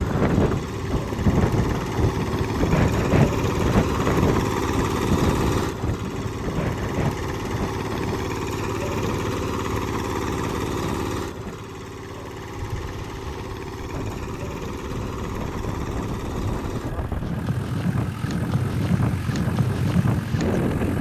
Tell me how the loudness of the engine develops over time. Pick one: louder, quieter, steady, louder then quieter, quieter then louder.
quieter.